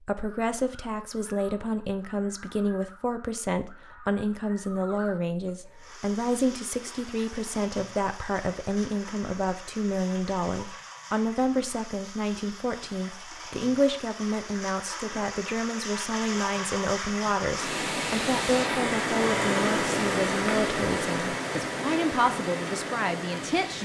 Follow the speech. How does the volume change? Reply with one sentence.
The loudness of the speech stays about the same.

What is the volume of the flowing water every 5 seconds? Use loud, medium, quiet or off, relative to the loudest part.
off, quiet, quiet, loud, loud.